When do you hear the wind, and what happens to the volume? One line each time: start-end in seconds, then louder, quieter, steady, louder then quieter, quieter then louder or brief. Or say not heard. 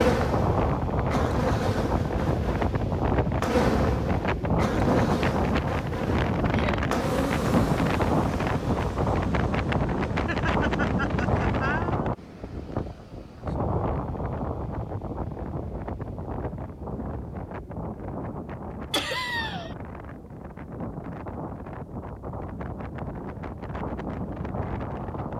0.0-25.3 quieter.